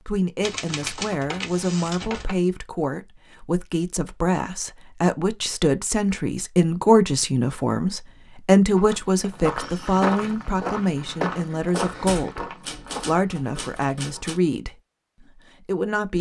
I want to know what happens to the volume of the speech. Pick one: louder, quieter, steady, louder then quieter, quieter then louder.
louder then quieter.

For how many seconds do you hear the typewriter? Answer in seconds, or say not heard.
5 s.